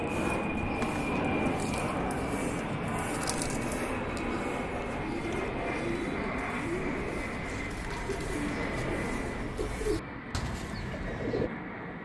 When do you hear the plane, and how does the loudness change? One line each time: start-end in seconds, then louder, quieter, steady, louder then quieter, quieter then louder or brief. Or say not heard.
0.0-12.0 quieter.